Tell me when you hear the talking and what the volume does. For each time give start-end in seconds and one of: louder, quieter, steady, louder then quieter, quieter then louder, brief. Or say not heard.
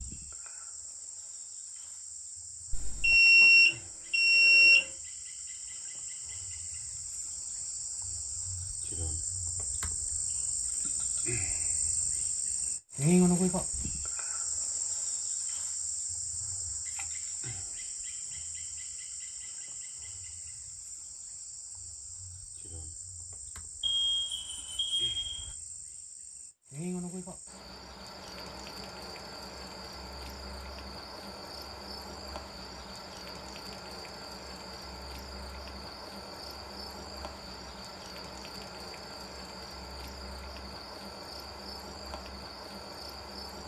not heard.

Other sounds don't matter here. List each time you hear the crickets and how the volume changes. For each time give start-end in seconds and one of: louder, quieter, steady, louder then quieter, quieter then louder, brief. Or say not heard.
0.0-43.6 louder then quieter.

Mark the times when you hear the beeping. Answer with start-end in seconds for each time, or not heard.
2.7-4.8, 23.8-25.5.